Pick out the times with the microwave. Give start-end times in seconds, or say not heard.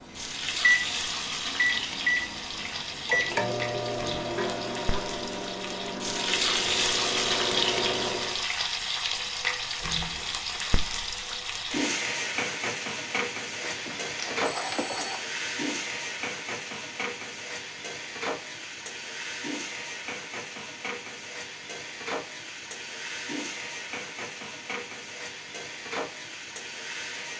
0.1-8.4.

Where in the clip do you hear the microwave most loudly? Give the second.
1 s.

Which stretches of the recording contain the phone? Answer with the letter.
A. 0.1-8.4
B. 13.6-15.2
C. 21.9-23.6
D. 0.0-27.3
B.